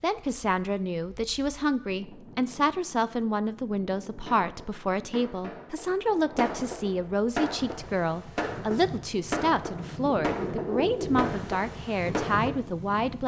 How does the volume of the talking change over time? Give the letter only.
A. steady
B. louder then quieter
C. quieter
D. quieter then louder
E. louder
A.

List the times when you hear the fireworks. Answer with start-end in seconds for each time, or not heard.
4.2-12.7.